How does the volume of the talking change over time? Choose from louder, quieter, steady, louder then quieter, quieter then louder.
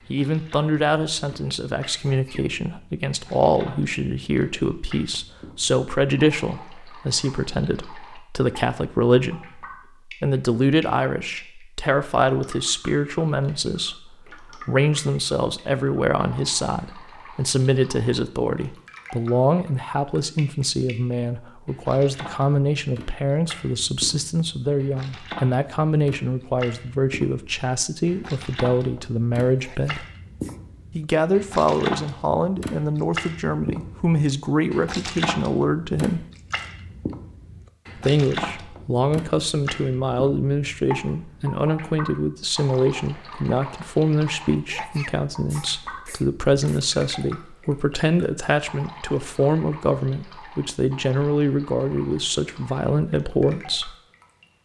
steady.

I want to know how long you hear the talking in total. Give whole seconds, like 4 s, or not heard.
51 s.